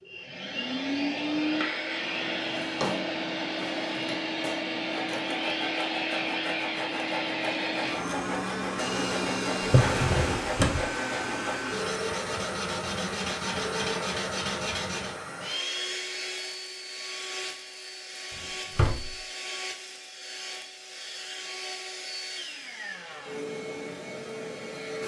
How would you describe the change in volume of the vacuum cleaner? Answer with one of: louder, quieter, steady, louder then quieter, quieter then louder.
quieter.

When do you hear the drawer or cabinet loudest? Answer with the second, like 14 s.
10 s.